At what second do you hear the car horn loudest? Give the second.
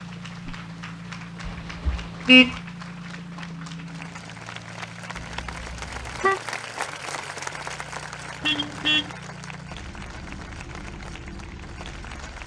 2 s.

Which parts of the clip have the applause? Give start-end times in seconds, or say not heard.
0.0-12.4.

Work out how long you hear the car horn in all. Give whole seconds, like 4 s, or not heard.
3 s.